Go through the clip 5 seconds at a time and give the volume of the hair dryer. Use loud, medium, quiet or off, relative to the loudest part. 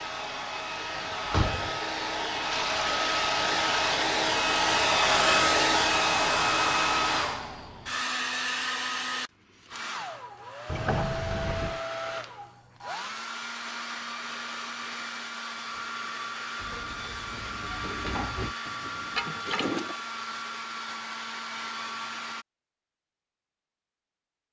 loud, loud, medium, medium, medium.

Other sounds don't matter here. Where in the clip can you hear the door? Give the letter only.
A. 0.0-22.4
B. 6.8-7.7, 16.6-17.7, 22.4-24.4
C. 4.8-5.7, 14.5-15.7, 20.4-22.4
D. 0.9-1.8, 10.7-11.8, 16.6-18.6
D.